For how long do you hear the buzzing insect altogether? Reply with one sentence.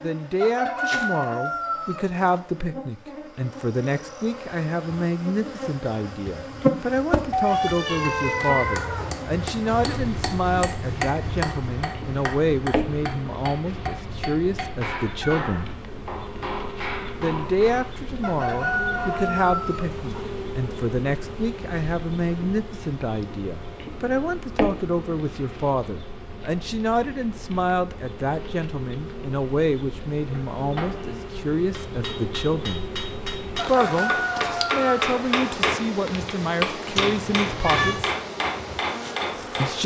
You can hear the buzzing insect for 40 seconds altogether.